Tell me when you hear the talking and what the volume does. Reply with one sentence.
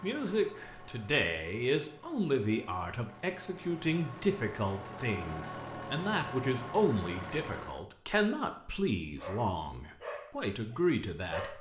You can hear the talking from 0.0 to 11.5 s, at a steady volume.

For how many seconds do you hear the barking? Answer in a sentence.
You can hear the barking for 2 seconds altogether.